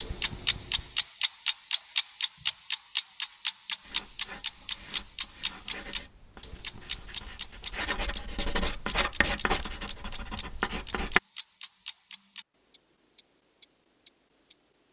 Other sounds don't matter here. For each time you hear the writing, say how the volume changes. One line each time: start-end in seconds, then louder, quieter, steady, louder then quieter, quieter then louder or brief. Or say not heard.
3.8-11.2 louder.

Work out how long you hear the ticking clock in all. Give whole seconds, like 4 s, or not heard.
15 s.